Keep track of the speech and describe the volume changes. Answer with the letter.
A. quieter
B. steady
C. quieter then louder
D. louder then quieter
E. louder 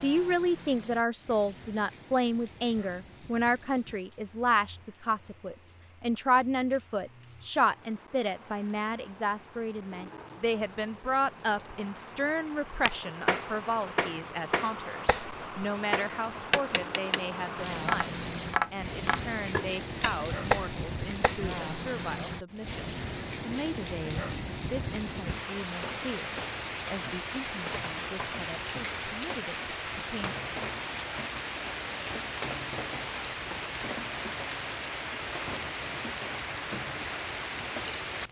A.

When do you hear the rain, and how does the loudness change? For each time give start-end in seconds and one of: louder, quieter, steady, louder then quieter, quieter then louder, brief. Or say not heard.
0.0-38.2 louder.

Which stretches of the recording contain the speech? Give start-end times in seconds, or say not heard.
0.0-30.4.